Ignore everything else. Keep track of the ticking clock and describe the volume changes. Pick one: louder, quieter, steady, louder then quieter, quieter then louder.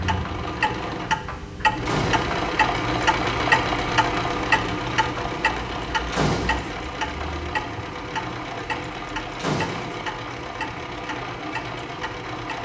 quieter.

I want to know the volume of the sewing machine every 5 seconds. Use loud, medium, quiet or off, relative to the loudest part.
loud, medium, medium.